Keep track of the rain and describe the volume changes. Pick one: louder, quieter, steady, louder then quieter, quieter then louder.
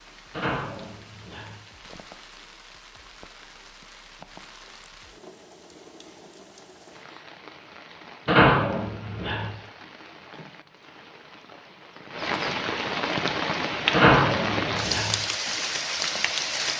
louder.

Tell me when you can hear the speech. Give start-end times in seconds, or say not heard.
not heard.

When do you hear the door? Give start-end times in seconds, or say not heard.
0.3-1.6, 8.2-9.5, 13.9-15.2.